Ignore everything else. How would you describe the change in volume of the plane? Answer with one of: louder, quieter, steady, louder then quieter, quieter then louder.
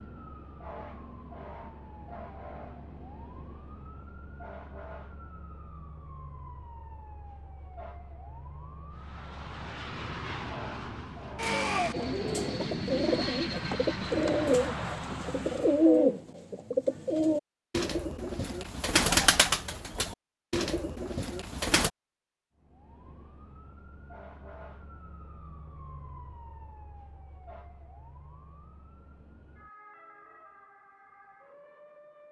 louder then quieter.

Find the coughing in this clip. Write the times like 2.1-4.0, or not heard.
not heard.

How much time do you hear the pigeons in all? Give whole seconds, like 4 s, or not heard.
10 s.